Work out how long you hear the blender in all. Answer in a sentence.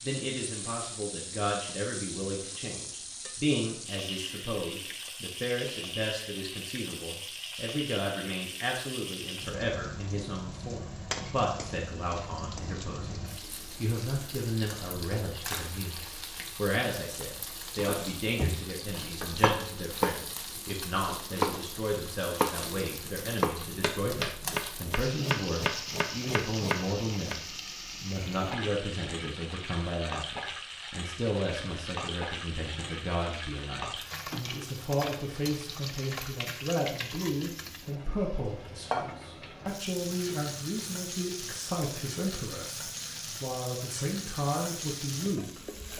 The blender can't be heard in this clip.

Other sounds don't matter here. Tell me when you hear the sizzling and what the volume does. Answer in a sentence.
The sizzling can be heard from 0.0 to 45.9 s, at a steady volume.